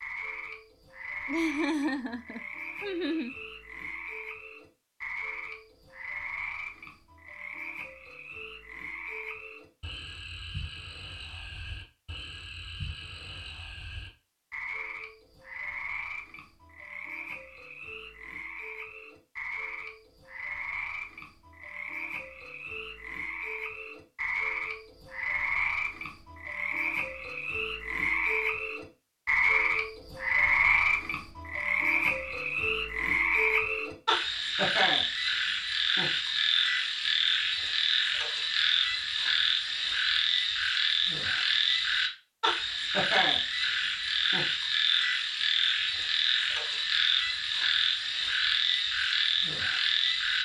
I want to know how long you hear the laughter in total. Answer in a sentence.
The laughter can be heard for 2 seconds in total.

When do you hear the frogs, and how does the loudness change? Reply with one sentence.
You can hear the frogs from 0.0 to 50.4 s, getting louder.